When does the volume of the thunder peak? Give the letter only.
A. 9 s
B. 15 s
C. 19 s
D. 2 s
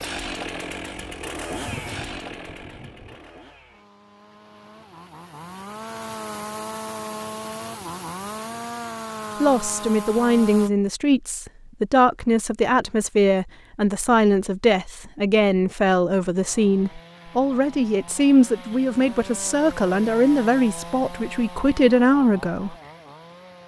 D.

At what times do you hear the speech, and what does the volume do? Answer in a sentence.
The speech can be heard from 9.4 to 22.8 s, at a steady volume.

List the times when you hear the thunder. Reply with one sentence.
You can hear the thunder from 1.5 to 3.2 s.